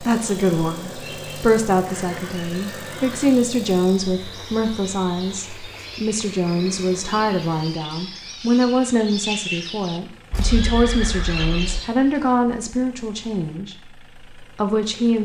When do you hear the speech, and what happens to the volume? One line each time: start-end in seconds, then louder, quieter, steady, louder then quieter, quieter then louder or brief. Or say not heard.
0.0-15.2 steady.